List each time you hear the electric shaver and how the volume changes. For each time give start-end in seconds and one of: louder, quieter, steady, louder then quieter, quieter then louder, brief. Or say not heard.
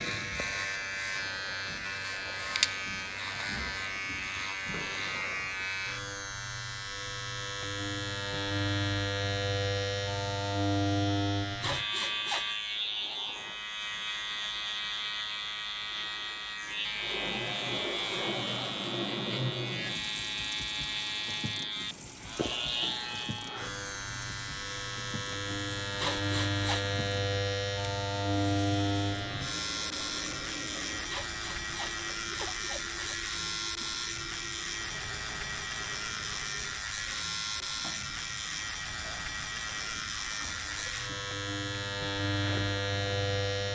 0.0-43.7 steady.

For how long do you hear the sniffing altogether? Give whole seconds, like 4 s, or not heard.
4 s.